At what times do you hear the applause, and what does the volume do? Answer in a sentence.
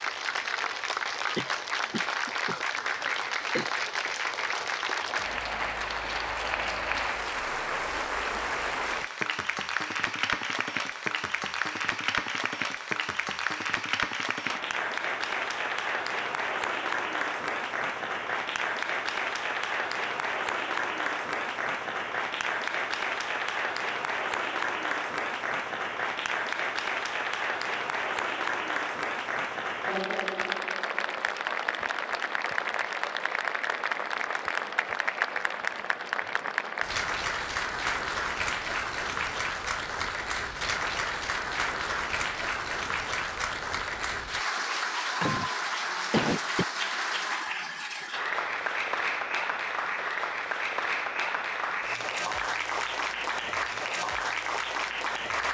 The applause can be heard from 0.0 to 55.4 s, at a steady volume.